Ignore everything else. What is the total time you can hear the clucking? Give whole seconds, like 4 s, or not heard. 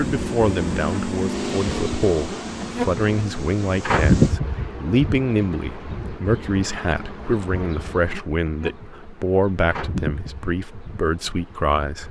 not heard.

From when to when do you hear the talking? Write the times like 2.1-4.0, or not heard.
0.0-12.0.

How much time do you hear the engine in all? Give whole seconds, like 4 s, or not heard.
4 s.